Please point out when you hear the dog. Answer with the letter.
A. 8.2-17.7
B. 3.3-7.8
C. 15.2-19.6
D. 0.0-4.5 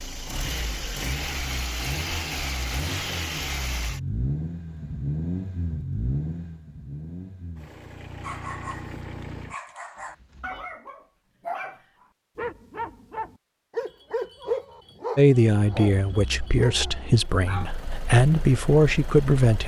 A.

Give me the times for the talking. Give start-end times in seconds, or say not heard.
15.2-19.6.